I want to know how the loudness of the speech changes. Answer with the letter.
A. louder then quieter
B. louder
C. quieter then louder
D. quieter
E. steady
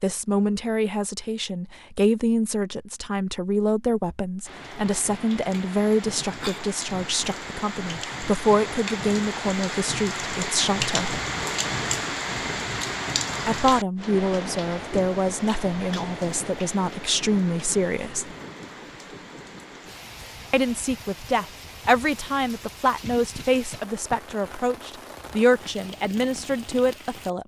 E.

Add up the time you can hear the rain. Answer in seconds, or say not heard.
23 s.